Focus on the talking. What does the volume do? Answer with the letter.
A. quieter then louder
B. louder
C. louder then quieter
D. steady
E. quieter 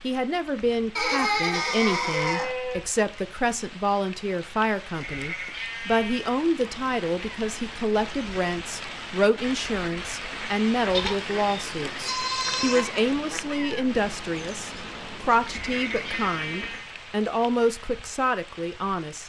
D.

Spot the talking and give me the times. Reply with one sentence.
You can hear the talking from 0.0 to 19.2 s.